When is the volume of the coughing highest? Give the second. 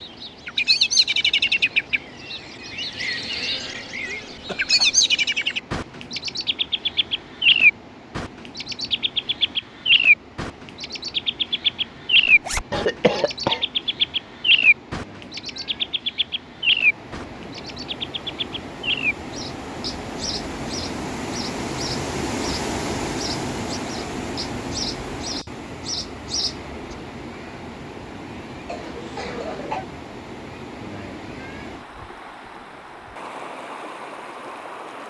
13 s.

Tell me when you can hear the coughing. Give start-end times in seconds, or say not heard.
3.5-5.0, 12.7-13.7, 28.6-29.9.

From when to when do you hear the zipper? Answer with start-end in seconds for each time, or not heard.
12.2-12.7.